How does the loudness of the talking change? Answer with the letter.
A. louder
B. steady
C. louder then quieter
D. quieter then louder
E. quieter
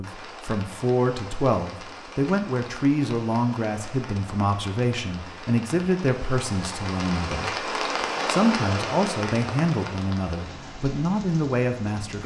B.